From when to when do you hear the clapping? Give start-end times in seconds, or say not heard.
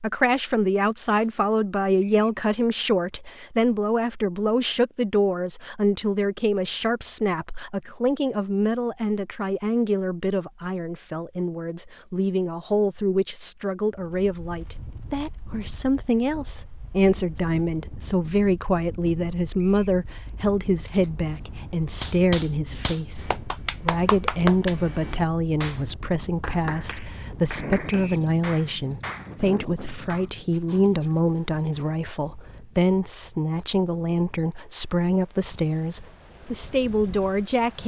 22.0-30.3.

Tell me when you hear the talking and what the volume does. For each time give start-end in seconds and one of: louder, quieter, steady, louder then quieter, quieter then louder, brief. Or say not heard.
0.0-37.8 steady.